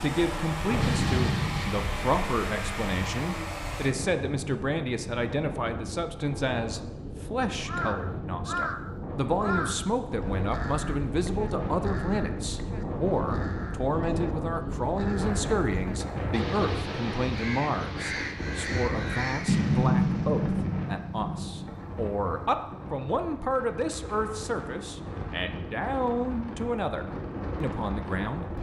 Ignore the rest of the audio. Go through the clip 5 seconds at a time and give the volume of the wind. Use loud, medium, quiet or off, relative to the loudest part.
medium, loud, loud, loud, medium, loud.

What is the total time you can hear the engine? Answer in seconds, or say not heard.
4 s.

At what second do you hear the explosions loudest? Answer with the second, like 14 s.
20 s.